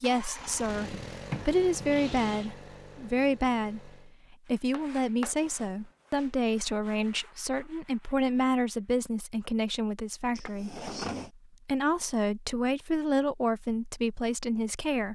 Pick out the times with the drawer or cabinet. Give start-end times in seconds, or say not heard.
0.7-2.5, 10.3-11.3.